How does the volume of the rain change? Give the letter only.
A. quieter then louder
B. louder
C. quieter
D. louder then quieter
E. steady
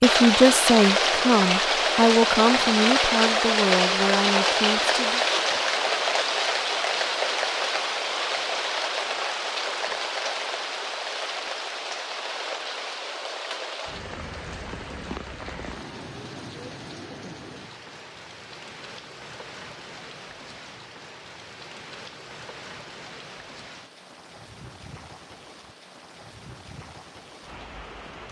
C.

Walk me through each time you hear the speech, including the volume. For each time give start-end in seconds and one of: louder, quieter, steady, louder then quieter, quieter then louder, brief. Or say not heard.
0.0-5.2 quieter.